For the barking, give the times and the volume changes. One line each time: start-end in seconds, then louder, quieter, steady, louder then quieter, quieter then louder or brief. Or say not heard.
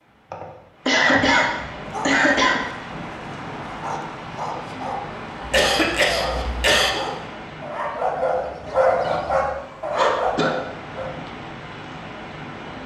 1.9-11.1 louder.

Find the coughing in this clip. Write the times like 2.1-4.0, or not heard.
0.3-2.6, 5.5-6.9, 8.7-10.5.